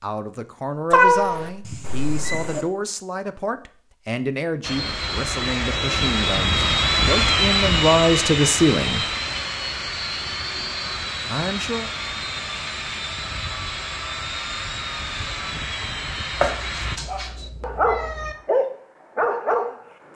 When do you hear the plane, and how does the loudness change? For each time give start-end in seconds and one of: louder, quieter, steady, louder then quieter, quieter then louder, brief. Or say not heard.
4.6-17.0 quieter.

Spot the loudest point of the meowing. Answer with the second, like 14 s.
1 s.